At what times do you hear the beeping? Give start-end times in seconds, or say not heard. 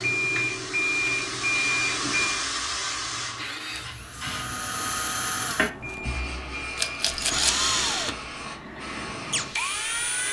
0.0-2.5, 5.8-7.2.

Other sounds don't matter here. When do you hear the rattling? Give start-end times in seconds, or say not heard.
6.8-7.7.